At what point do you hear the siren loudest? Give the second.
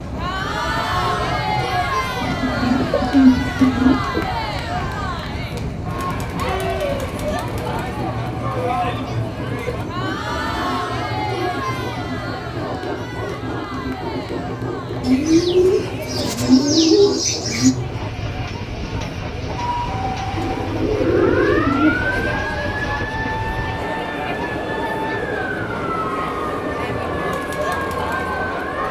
22 s.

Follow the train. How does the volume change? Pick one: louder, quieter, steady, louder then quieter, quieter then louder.
steady.